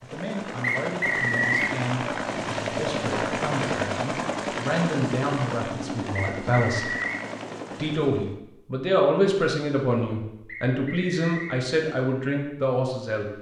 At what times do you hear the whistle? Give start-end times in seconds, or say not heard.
0.6-1.8, 6.2-7.2, 10.4-11.6.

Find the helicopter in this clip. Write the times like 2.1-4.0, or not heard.
0.0-8.4.